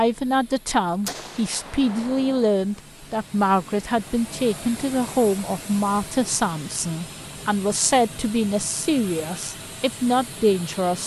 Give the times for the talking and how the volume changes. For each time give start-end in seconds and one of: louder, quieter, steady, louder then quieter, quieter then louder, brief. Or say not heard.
0.0-11.0 steady.